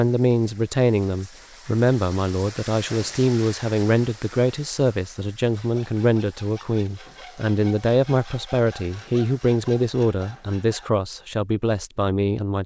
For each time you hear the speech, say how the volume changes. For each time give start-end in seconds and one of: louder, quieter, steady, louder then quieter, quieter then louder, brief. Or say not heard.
0.0-12.6 steady.